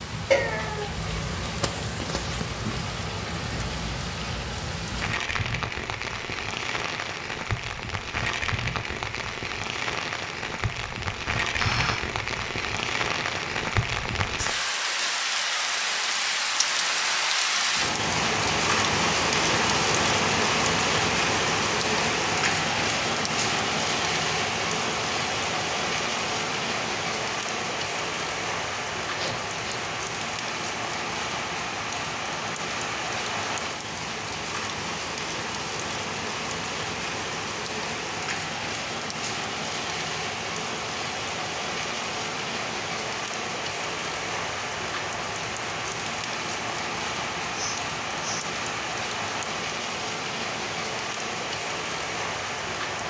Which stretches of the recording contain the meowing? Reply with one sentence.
You can hear the meowing from 0.3 to 0.9 s.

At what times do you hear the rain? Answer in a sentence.
The rain can be heard from 0.0 to 53.0 s.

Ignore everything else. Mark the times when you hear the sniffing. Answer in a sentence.
You can hear the sniffing from 11.6 to 12.1 s, from 29.1 to 29.9 s and from 47.5 to 48.5 s.